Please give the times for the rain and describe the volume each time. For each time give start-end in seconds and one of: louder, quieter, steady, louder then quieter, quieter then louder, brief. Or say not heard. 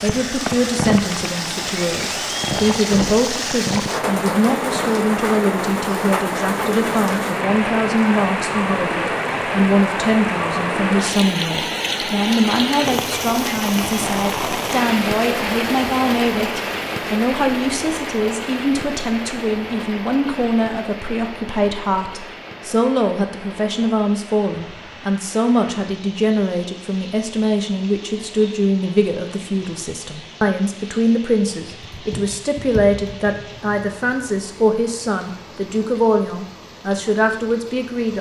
0.0-38.1 quieter.